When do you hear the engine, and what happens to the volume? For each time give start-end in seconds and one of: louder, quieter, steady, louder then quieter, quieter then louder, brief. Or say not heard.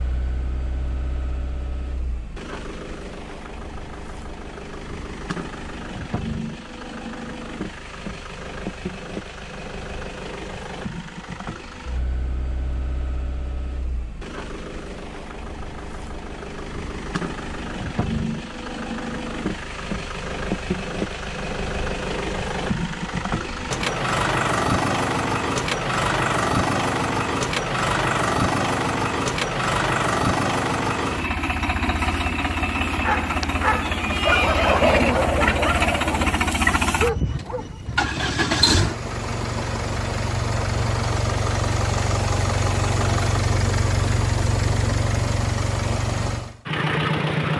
0.0-47.5 louder.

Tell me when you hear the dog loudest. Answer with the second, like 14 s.
35 s.